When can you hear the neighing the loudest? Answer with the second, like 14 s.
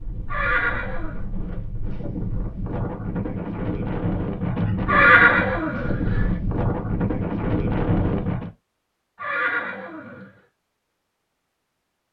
5 s.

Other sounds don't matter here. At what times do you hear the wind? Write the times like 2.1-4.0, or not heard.
0.0-8.5.